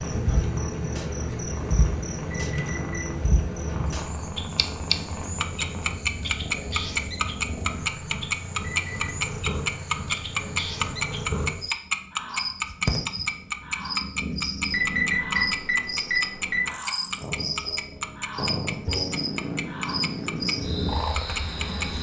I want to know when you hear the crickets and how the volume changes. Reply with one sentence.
You can hear the crickets from 0.0 to 21.9 s, getting quieter then louder.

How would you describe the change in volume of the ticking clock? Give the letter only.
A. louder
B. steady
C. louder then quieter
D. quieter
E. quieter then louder
C.